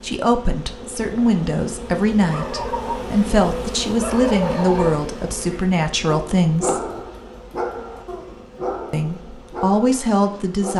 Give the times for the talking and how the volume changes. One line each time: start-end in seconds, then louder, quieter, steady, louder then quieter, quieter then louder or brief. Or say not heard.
0.0-6.8 steady
8.9-10.7 brief.